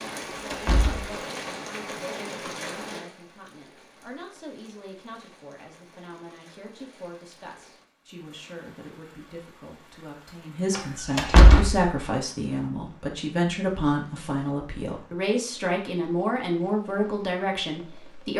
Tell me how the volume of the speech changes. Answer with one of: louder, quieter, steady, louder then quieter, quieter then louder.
louder.